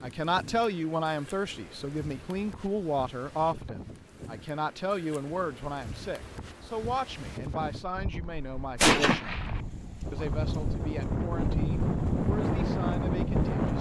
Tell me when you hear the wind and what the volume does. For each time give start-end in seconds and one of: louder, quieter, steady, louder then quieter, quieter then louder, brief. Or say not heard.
0.0-13.7 louder.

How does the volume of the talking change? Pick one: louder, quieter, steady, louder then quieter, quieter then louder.
quieter.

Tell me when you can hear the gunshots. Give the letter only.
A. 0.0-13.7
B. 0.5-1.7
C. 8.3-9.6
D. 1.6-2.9
C.